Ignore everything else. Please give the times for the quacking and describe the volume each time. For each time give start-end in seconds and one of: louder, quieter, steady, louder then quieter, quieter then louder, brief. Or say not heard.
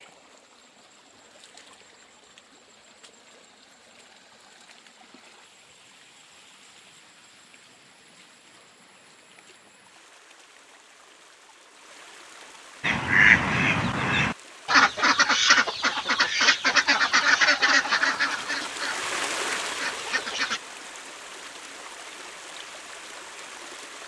12.8-20.6 quieter.